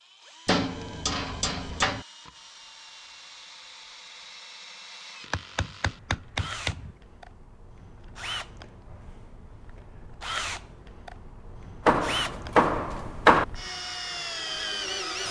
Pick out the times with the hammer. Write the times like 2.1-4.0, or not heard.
0.5-2.0, 5.3-7.0, 11.8-13.4.